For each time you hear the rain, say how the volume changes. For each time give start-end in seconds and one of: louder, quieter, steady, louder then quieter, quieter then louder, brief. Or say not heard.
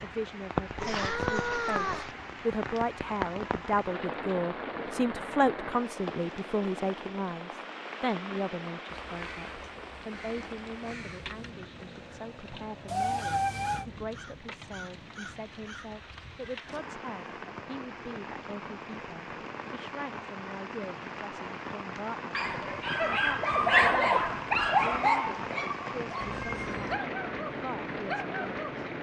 0.0-28.9 quieter then louder.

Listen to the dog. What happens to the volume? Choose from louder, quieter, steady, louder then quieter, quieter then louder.
quieter.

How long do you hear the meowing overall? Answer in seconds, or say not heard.
3 s.